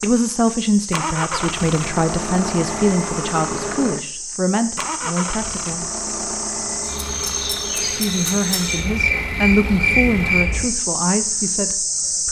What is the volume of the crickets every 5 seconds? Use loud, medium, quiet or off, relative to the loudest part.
medium, loud, loud.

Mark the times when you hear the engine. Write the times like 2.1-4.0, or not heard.
0.0-10.4.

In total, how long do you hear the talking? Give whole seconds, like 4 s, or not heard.
10 s.